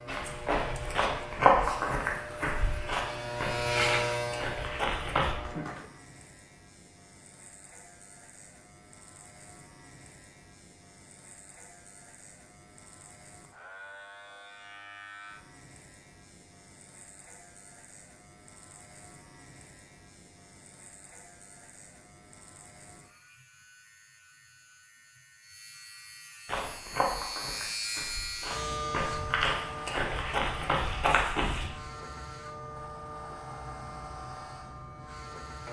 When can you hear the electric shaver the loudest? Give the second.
4 s.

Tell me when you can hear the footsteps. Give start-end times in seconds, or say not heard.
0.1-5.3, 26.4-31.7.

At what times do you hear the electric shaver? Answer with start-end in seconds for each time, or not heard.
0.0-35.6.